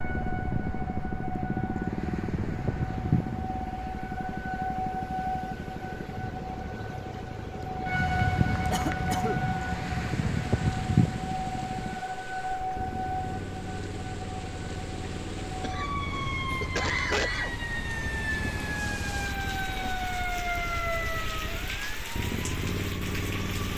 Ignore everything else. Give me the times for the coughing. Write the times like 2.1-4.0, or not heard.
8.7-9.4, 15.6-17.5.